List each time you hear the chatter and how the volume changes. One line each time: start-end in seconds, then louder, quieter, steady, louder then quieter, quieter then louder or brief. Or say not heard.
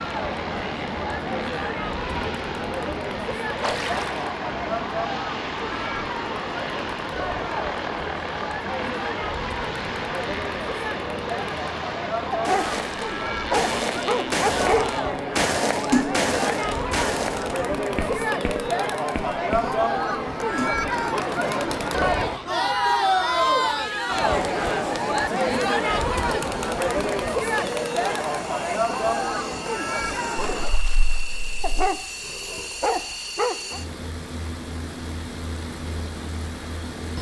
0.0-30.7 louder.